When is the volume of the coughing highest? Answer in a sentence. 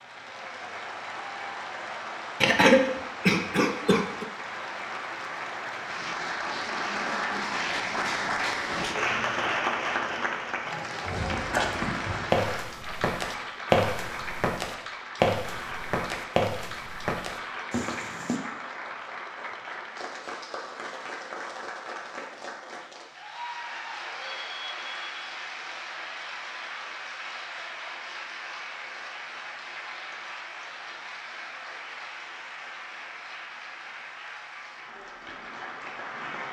The loudest moment of the coughing is at 3 seconds.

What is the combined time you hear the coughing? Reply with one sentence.
You can hear the coughing for 2 seconds altogether.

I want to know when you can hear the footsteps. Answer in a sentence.
You can hear the footsteps from 11.1 to 18.4 s.